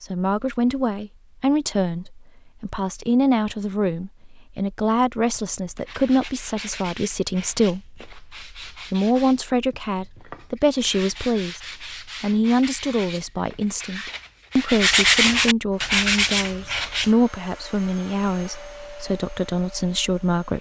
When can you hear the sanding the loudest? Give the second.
15 s.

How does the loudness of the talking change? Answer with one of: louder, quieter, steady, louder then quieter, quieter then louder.
steady.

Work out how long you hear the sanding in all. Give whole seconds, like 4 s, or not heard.
12 s.